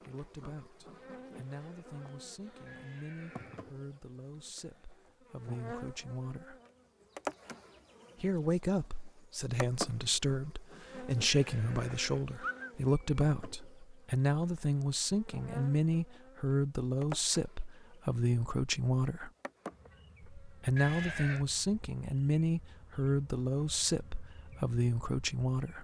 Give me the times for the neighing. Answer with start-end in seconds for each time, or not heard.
2.6-3.7, 11.4-12.7, 20.8-21.4.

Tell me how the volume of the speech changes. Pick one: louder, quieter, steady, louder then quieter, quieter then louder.
louder.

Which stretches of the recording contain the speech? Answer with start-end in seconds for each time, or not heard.
0.0-6.5, 8.2-19.3, 20.4-25.7.